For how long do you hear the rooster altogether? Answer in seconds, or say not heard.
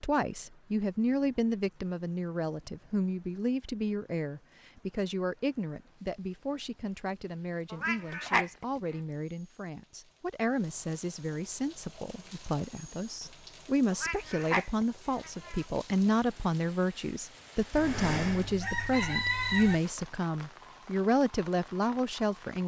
2 s.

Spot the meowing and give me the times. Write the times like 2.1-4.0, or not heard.
7.7-8.7, 13.9-15.7.